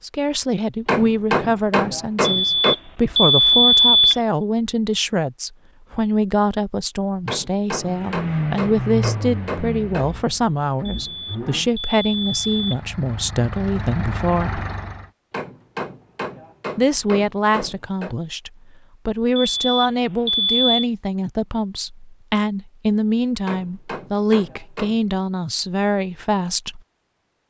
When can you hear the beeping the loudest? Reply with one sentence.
The loudest moment of the beeping is at 4 seconds.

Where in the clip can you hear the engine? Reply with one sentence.
You can hear the engine from 7.8 to 15.1 s.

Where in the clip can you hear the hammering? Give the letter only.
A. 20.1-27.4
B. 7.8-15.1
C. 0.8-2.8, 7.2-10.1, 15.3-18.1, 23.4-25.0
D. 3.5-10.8
C.